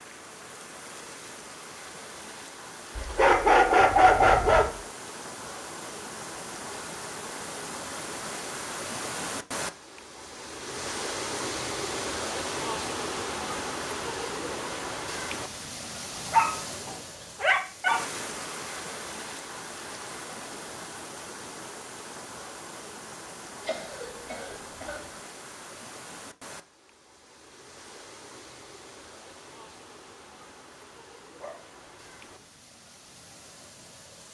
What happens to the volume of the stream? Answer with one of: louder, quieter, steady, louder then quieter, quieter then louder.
louder then quieter.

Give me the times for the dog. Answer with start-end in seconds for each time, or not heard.
3.0-4.7, 16.2-18.0, 31.4-32.5.